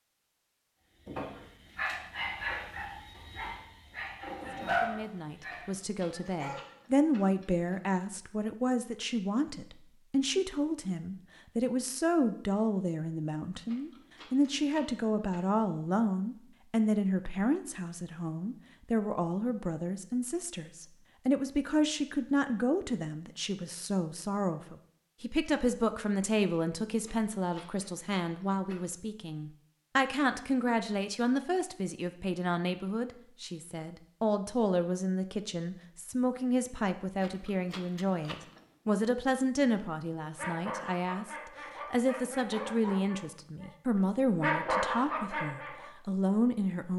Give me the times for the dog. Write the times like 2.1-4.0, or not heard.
1.1-6.8, 40.4-43.7, 44.4-45.9.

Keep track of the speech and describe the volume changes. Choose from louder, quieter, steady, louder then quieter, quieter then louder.
steady.